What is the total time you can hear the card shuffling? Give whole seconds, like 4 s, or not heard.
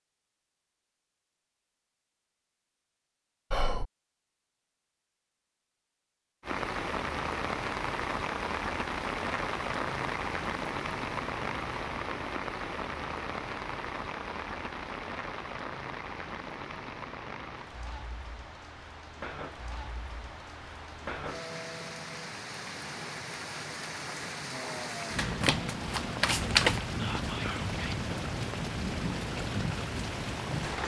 2 s.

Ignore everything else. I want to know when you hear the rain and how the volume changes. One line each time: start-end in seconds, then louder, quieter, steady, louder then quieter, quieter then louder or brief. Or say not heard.
6.4-30.8 quieter then louder.